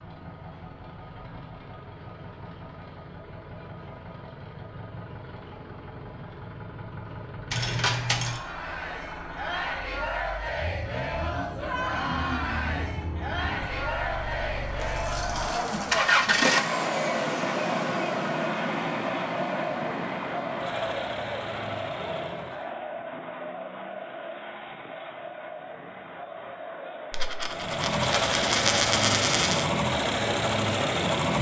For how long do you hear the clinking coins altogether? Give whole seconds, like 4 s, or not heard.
5 s.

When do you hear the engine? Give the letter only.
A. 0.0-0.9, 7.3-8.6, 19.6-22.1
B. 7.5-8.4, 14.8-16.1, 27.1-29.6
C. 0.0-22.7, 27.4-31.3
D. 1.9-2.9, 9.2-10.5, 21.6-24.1
C.